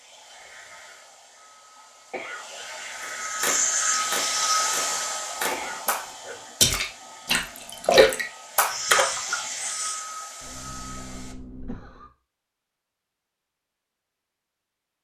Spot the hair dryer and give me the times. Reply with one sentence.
You can hear the hair dryer from 0.0 to 11.3 s.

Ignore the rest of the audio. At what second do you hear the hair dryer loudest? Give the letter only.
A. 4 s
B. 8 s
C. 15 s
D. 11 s
A.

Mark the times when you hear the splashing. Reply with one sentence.
You can hear the splashing from 3.0 to 9.3 s.